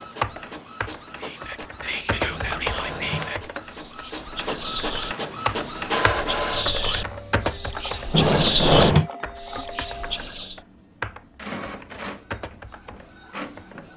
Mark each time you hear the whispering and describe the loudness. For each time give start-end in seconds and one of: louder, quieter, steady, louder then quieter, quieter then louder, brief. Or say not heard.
1.2-10.6 louder.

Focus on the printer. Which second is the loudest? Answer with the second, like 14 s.
6 s.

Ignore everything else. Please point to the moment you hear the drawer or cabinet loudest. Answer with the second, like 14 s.
9 s.